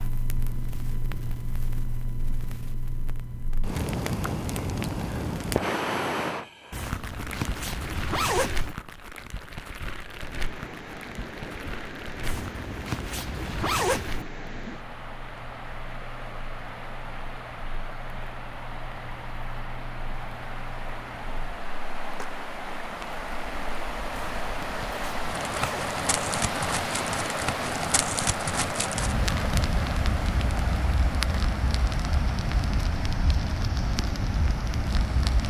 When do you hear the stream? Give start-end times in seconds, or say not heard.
10.0-35.4.